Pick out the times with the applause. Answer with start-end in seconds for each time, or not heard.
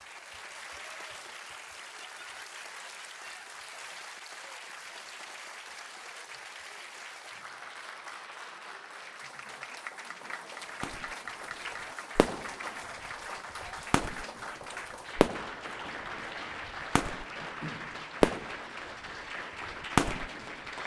0.0-20.8.